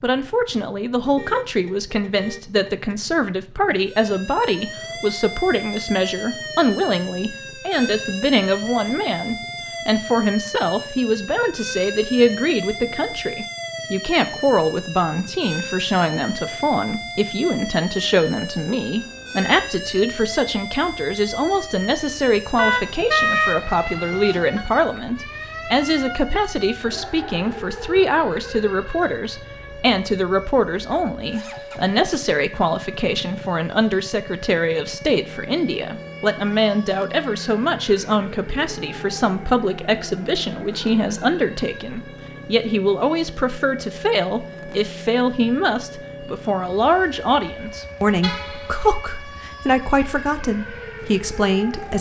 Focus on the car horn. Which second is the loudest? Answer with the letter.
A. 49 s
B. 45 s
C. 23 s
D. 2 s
C.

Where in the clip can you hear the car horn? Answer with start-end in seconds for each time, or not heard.
1.1-3.0, 22.6-24.6, 48.2-48.8.